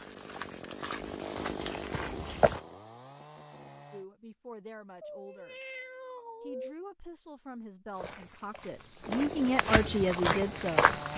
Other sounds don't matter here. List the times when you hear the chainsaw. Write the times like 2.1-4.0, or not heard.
0.0-4.0, 9.0-11.1.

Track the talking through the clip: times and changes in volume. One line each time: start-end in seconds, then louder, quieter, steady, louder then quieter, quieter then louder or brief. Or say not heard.
3.9-5.5 brief
6.4-10.9 louder.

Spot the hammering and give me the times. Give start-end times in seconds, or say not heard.
not heard.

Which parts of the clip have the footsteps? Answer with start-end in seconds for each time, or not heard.
0.0-2.6, 8.0-11.1.